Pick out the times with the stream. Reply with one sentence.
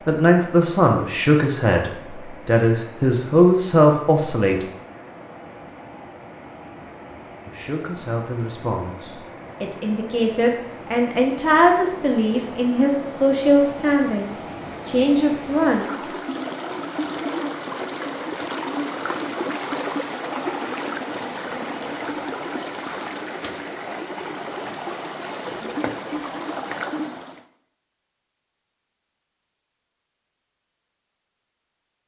The stream can be heard from 0.0 to 27.4 s.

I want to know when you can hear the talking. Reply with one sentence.
The talking can be heard from 0.1 to 4.7 s and from 7.5 to 15.9 s.